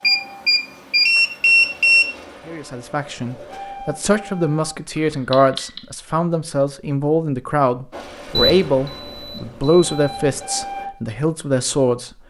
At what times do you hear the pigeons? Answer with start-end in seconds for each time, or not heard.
not heard.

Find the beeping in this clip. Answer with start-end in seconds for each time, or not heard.
0.0-2.0, 5.3-5.8, 8.3-10.3.